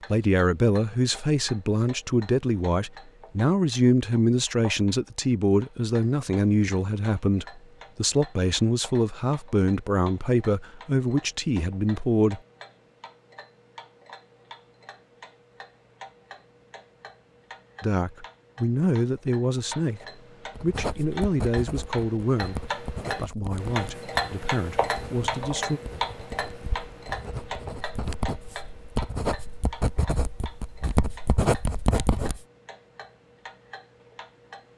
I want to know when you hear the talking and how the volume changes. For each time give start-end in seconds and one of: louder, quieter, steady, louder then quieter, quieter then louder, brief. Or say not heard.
0.1-12.4 steady
17.8-25.8 quieter.